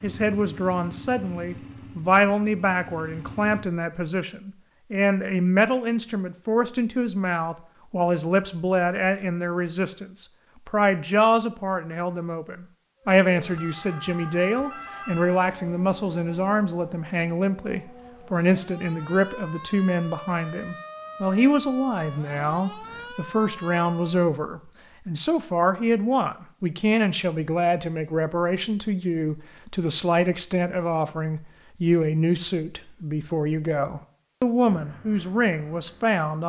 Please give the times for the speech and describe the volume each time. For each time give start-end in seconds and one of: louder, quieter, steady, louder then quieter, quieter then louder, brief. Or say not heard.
0.0-36.4 steady.